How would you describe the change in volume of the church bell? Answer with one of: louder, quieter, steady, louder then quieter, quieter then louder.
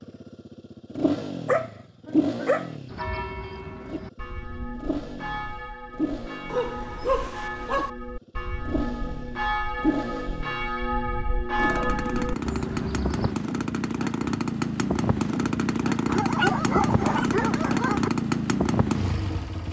louder.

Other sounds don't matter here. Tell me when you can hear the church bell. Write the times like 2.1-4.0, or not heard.
2.9-13.3.